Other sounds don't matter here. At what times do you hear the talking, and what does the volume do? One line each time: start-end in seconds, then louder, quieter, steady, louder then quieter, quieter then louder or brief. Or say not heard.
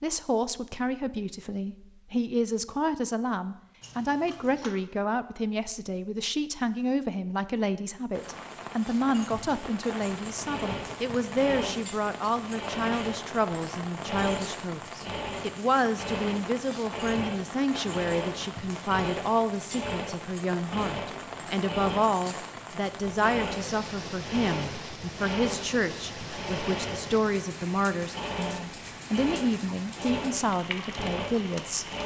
0.0-31.9 steady.